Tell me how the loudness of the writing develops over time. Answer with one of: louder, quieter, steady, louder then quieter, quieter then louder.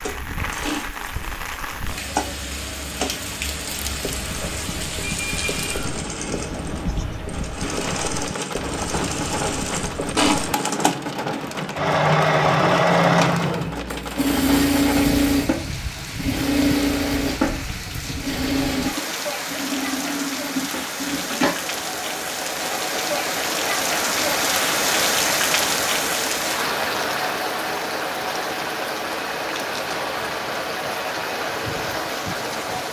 steady.